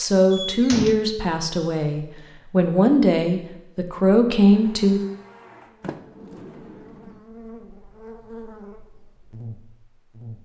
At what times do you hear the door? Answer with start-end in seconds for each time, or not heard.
0.3-1.0, 5.8-7.2.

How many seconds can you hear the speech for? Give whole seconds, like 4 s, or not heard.
5 s.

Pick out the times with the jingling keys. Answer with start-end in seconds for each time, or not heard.
not heard.